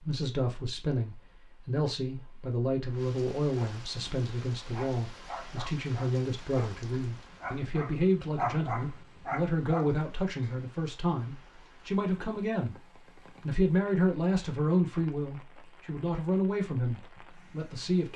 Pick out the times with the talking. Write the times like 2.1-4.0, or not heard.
0.0-12.8, 13.4-18.1.